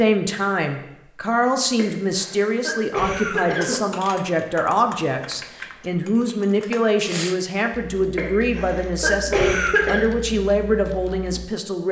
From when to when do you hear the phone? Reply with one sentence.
You can't hear the phone here.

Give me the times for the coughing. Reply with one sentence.
You can hear the coughing from 1.8 to 3.8 s and from 8.2 to 10.0 s.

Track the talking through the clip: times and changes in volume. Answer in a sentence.
The talking can be heard from 0.0 to 11.8 s, at a steady volume.